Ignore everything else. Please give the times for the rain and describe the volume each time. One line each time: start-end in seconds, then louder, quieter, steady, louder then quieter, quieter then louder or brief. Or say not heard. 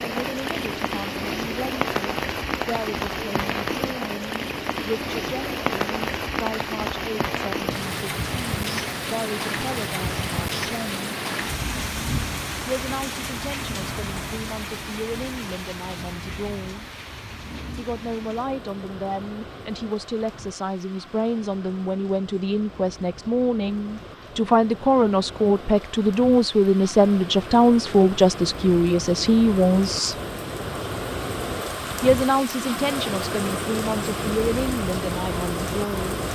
0.0-36.3 quieter then louder.